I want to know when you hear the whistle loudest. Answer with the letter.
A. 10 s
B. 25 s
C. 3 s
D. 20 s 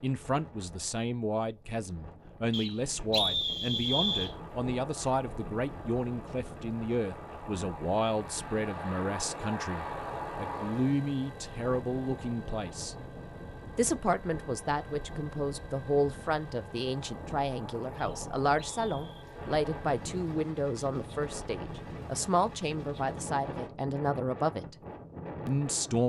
C.